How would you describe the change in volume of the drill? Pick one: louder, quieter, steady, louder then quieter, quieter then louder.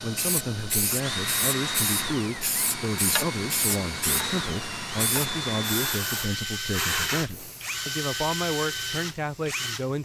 steady.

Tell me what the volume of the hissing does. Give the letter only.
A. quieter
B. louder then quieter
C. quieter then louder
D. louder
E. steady
A.